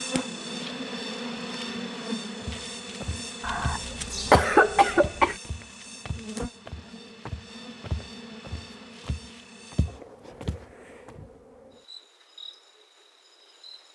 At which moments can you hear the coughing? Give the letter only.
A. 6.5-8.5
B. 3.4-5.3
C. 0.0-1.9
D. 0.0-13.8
B.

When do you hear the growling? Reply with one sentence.
You can't hear the growling here.